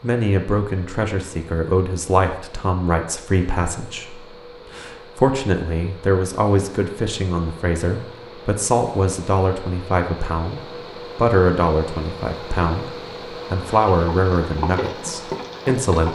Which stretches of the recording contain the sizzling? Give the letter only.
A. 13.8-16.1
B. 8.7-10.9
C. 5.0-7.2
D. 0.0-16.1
A.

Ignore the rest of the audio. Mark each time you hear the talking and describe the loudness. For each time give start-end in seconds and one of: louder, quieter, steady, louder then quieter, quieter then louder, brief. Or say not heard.
0.0-16.1 steady.